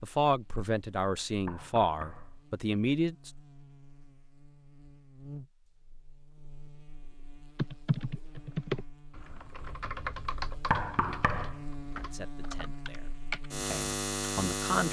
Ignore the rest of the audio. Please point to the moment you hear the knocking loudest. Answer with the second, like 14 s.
11 s.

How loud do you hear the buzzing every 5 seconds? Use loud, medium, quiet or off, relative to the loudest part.
quiet, quiet, loud.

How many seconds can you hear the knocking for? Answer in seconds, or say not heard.
2 s.